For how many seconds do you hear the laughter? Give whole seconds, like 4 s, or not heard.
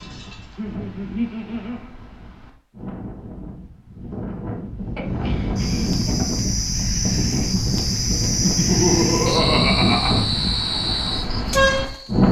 4 s.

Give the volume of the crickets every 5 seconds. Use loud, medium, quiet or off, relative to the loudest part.
off, loud, loud.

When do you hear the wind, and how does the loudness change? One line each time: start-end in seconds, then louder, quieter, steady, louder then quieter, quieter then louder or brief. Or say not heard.
0.0-12.2 louder.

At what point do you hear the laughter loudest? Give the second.
9 s.